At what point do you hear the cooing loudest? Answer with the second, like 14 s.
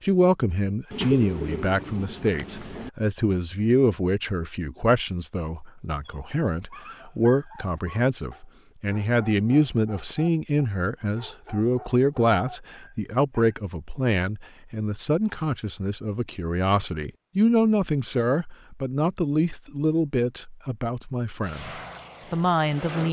1 s.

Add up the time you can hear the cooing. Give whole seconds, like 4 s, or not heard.
2 s.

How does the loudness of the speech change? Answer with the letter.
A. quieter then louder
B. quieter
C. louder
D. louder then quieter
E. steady
E.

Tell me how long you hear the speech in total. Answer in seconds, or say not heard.
23 s.